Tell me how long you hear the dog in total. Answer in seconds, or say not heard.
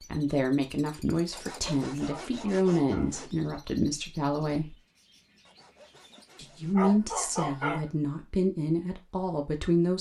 2 s.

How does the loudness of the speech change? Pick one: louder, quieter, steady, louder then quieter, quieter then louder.
steady.